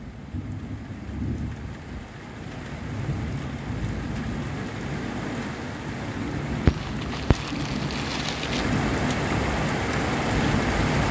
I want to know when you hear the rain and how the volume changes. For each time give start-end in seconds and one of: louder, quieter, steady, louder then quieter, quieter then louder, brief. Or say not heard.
0.0-11.0 louder.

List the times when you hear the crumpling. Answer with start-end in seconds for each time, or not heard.
6.7-8.7.